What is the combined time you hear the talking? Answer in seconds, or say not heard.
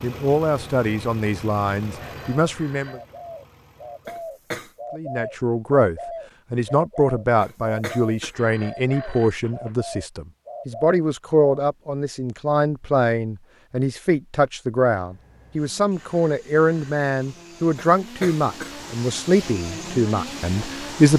19 s.